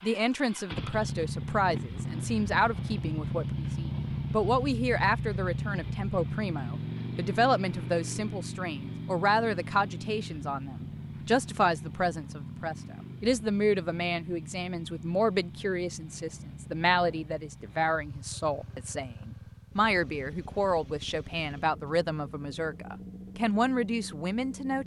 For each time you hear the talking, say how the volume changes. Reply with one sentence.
You can hear the talking from 0.0 to 24.8 s, at a steady volume.